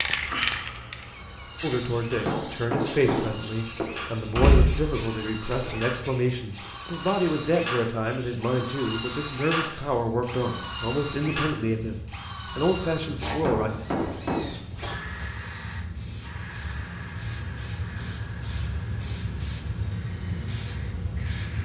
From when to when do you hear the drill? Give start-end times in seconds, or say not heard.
0.1-21.6.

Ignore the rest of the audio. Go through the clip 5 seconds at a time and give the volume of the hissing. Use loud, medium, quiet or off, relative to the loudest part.
loud, medium, medium, loud, loud.